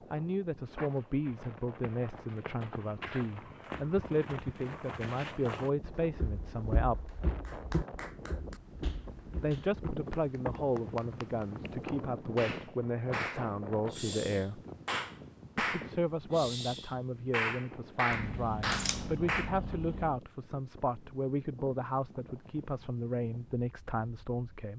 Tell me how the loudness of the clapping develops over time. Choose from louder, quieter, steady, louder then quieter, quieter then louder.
louder.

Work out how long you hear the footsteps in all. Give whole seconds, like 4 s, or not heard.
12 s.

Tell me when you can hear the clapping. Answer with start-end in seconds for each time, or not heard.
7.5-19.6.